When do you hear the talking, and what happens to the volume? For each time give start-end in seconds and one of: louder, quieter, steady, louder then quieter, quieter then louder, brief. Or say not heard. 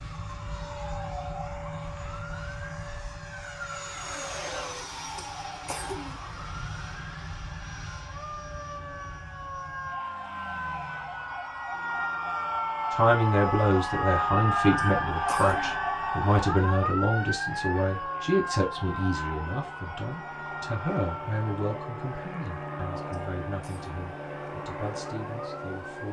12.9-26.0 quieter.